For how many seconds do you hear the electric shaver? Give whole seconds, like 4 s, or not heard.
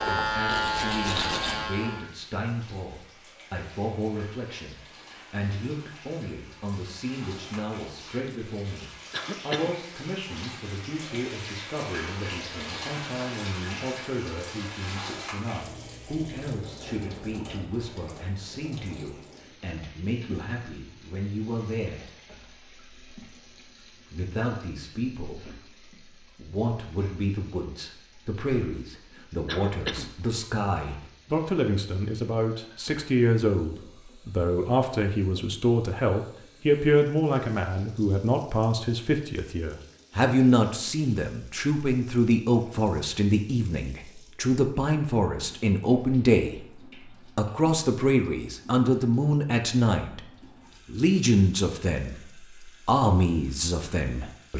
2 s.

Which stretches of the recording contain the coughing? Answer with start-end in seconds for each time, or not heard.
9.1-9.7, 29.4-30.1.